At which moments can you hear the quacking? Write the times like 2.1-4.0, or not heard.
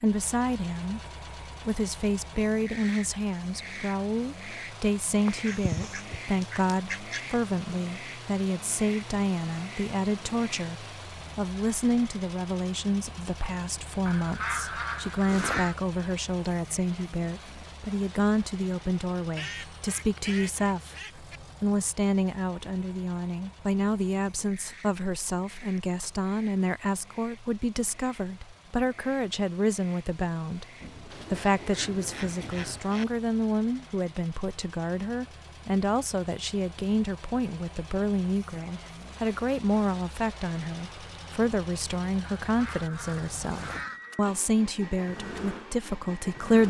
5.2-7.2, 14.1-15.8, 19.4-21.4, 31.1-33.0, 42.4-44.2.